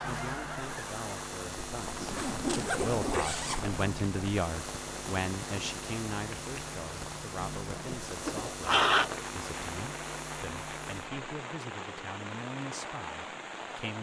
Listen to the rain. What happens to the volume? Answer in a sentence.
The volume of the rain stays about the same.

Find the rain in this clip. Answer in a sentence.
The rain can be heard from 0.0 to 13.9 s.